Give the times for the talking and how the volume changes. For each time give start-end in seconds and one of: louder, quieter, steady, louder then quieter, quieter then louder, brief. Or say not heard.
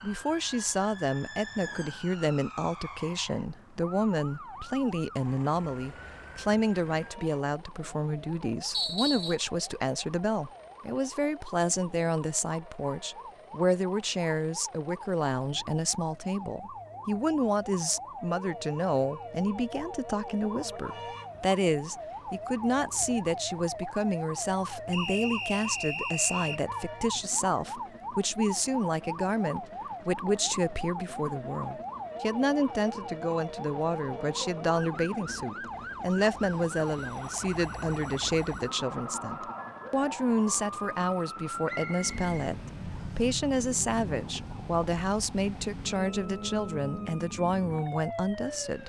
0.0-48.8 steady.